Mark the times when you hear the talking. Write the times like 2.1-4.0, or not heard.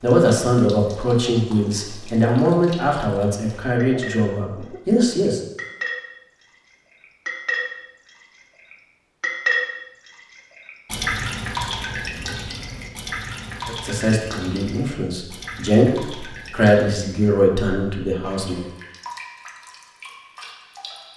0.0-5.4, 13.7-18.6.